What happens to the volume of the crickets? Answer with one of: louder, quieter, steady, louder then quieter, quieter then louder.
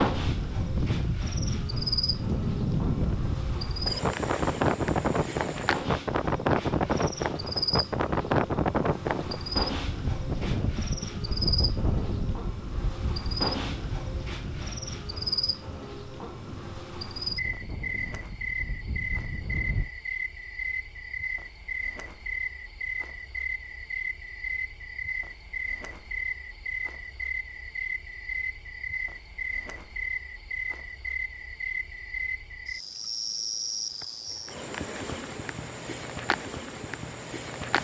steady.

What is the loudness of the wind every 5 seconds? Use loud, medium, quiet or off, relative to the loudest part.
loud, loud, medium, quiet, off, off, off, off.